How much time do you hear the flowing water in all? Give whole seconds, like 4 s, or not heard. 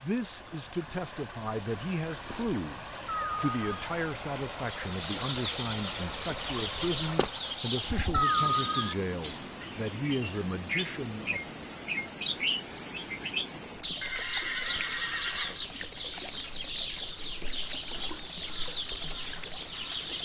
20 s.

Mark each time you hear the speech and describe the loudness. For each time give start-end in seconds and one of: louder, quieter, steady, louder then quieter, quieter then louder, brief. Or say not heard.
0.0-11.4 steady.